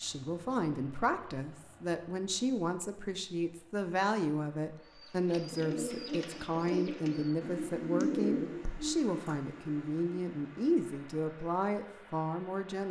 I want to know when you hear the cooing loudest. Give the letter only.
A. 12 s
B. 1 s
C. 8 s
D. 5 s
C.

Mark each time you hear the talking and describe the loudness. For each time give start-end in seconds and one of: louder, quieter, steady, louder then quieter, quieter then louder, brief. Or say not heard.
0.0-12.8 steady.